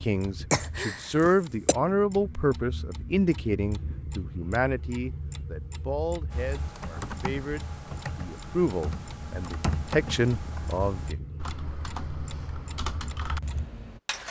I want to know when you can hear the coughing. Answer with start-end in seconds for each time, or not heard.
0.5-1.8.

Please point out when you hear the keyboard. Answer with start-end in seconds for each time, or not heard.
6.3-14.0.